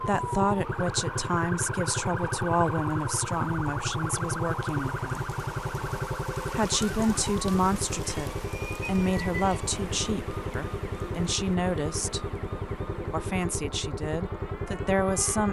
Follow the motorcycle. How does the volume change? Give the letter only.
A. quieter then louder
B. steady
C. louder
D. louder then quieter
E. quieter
B.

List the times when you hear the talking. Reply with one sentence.
The talking can be heard from 0.0 to 5.2 s, from 6.5 to 12.2 s and from 13.1 to 15.4 s.